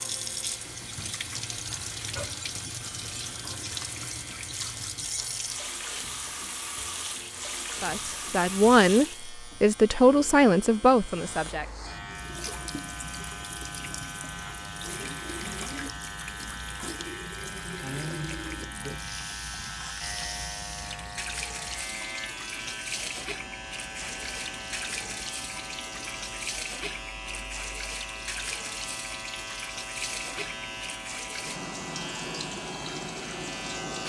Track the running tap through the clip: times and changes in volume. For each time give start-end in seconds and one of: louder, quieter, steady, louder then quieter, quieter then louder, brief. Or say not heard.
0.0-9.3 steady
12.1-34.0 steady.